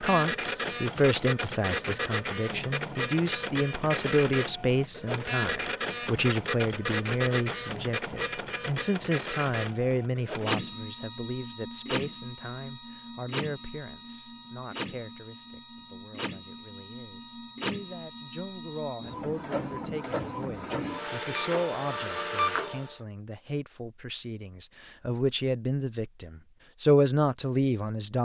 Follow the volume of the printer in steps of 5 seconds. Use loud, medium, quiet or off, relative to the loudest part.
loud, loud, medium, medium, loud, off.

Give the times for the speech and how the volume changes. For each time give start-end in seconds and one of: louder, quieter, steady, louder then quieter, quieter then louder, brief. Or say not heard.
0.0-28.2 quieter then louder.